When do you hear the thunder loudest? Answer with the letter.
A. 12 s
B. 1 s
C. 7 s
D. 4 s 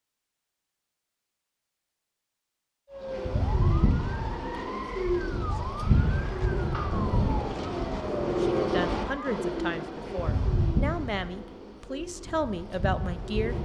C.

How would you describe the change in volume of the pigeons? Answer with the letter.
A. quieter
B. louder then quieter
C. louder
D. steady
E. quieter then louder
A.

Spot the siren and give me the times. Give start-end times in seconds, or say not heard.
2.9-9.4.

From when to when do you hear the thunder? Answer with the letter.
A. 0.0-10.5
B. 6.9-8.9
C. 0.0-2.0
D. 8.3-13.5
B.